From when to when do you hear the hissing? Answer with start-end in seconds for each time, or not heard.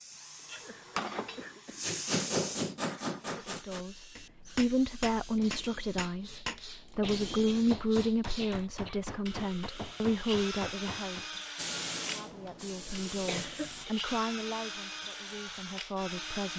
0.0-3.5, 11.6-13.8.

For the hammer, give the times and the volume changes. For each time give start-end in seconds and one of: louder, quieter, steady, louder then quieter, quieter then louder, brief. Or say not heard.
0.5-11.2 quieter.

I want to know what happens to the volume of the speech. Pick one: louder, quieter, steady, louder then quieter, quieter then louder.
quieter.